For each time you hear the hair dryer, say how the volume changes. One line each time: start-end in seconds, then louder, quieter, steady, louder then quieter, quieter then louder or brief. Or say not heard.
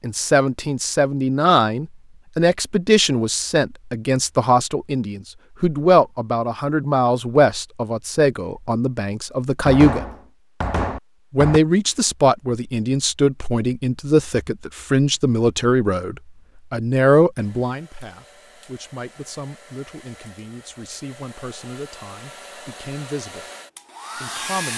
17.4-24.7 louder.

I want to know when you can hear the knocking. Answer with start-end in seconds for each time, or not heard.
9.7-11.6.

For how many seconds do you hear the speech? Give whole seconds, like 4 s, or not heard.
23 s.